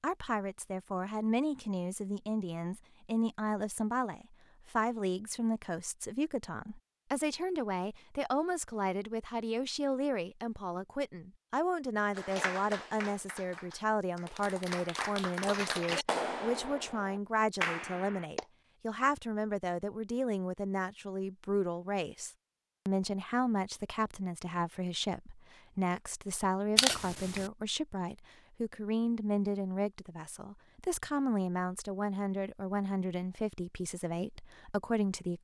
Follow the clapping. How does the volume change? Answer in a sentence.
The loudness of the clapping goes up.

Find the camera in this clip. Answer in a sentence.
You can hear the camera from 26.8 to 27.5 s.